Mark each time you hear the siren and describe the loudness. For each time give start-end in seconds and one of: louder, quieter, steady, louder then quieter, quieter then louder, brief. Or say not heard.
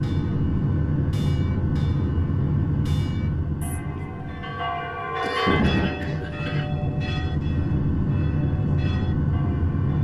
not heard.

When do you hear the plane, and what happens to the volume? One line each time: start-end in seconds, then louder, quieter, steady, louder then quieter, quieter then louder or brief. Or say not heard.
0.0-9.9 quieter then louder.